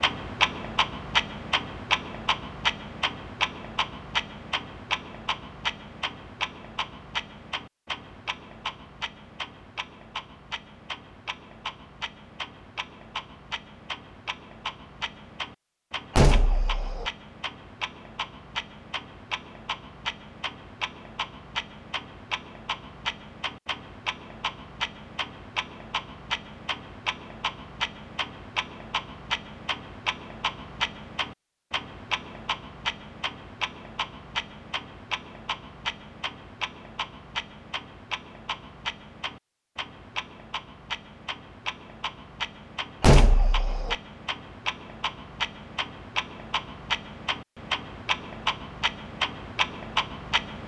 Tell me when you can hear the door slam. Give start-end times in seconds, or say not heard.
16.1-17.1, 43.0-44.0.